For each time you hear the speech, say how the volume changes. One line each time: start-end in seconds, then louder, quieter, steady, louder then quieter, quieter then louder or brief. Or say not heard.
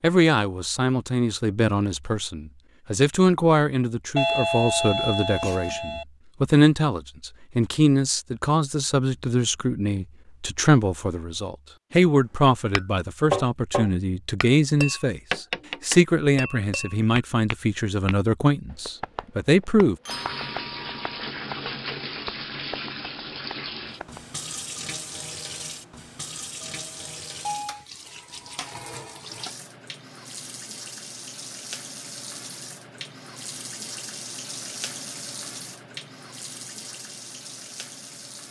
0.0-19.9 steady.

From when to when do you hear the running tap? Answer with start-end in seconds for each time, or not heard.
20.1-38.4.